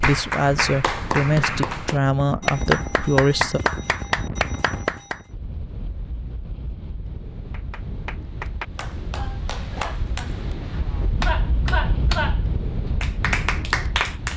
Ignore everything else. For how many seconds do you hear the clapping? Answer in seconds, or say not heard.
12 s.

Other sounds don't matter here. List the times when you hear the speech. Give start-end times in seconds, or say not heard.
0.0-3.6.